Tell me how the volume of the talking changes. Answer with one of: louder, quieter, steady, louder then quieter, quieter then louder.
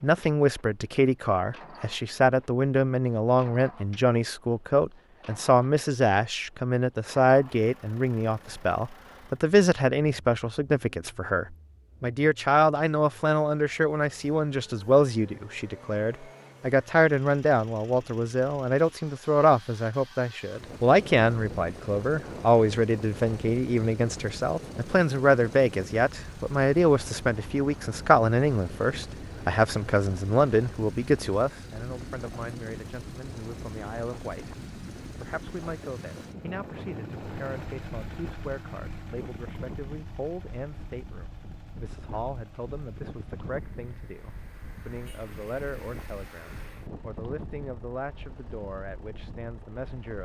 quieter.